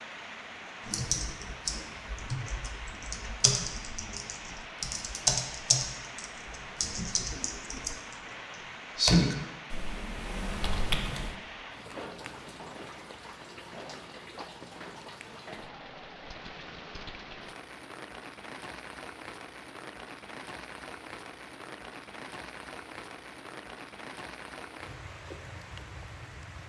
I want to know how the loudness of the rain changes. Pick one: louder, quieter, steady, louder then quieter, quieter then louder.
steady.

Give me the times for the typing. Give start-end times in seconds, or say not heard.
0.8-8.2, 8.9-11.3.